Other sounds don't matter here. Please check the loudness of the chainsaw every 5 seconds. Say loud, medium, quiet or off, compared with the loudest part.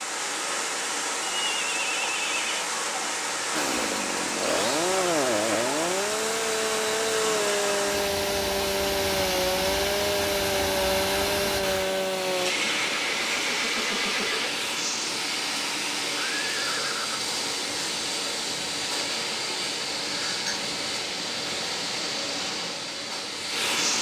loud, loud, loud, off, off.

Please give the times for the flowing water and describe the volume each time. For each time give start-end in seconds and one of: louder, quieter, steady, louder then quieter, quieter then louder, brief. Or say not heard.
0.0-23.9 steady.